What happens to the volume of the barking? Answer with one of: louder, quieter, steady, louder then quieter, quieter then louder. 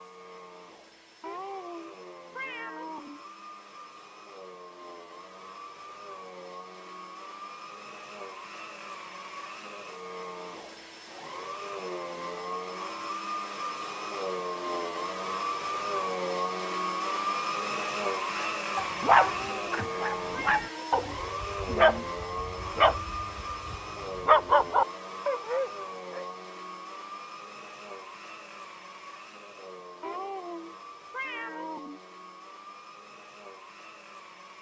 steady.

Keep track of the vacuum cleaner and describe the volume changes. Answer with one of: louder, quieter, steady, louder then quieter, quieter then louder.
louder then quieter.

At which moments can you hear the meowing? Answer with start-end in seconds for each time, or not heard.
1.2-3.2, 19.2-21.1, 30.0-32.0.